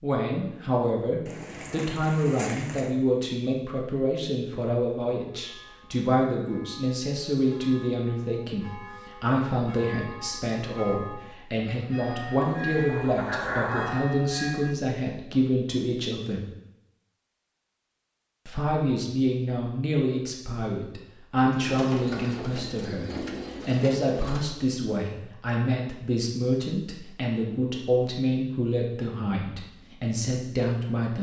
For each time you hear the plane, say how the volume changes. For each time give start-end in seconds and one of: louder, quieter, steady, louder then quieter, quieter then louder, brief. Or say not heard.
not heard.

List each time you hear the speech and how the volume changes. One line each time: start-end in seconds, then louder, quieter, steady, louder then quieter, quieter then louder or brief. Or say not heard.
0.0-16.4 steady
18.4-31.1 steady.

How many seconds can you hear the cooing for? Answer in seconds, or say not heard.
6 s.